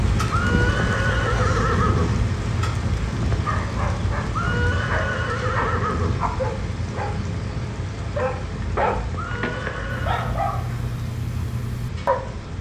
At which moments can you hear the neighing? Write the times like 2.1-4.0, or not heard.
0.3-2.2, 4.3-6.2, 9.2-10.3.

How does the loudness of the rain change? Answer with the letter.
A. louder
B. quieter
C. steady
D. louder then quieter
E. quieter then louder
B.